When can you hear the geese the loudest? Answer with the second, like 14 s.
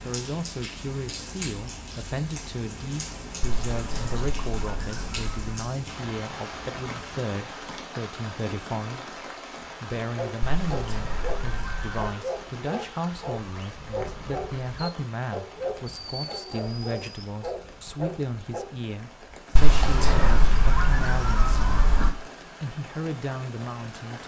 20 s.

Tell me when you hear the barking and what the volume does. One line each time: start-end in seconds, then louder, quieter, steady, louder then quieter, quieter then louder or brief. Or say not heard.
10.0-18.7 steady.